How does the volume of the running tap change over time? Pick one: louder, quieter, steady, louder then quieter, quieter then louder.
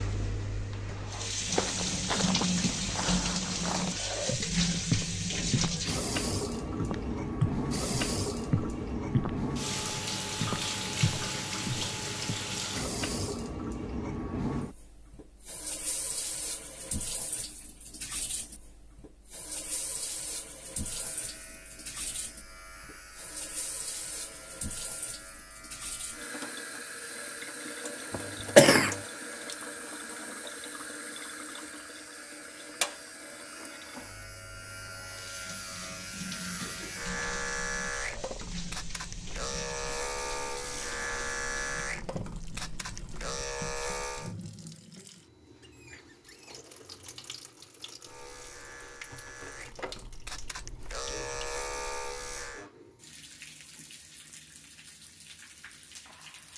quieter.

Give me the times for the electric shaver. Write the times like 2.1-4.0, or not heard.
20.8-44.4, 48.0-52.6.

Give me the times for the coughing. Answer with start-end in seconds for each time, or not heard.
28.1-28.9.